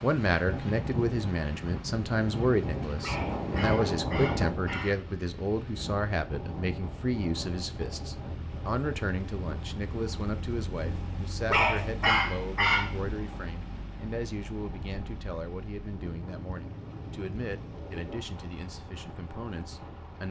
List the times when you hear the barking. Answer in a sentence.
You can hear the barking from 3.0 to 5.0 s and from 11.5 to 12.9 s.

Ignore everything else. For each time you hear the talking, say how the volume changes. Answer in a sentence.
The talking can be heard from 0.0 to 20.2 s, getting quieter.